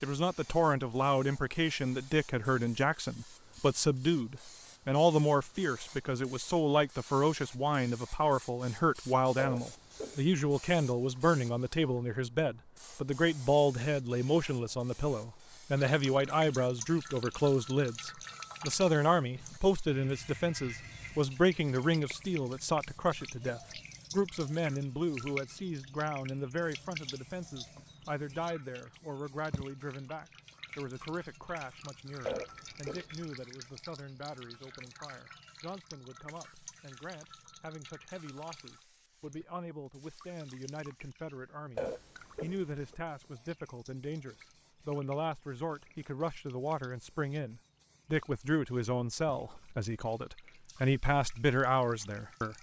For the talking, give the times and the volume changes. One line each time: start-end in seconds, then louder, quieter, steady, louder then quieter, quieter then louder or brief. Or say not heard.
0.0-52.5 quieter then louder.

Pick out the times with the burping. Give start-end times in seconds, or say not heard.
9.3-10.3, 32.2-33.2, 41.8-43.0.